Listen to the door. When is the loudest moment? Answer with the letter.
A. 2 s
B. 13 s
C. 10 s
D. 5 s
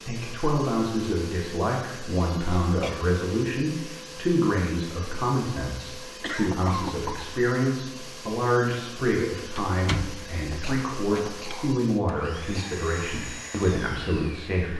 C.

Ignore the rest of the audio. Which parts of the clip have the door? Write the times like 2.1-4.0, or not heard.
9.6-11.6.